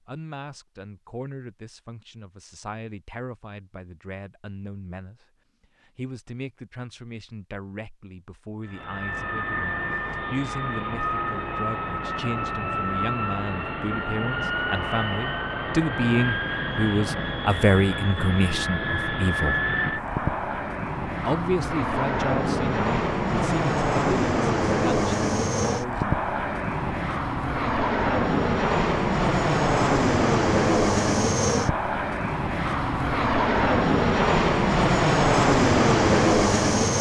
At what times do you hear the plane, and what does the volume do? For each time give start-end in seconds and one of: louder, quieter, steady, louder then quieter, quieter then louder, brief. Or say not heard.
8.7-36.9 louder.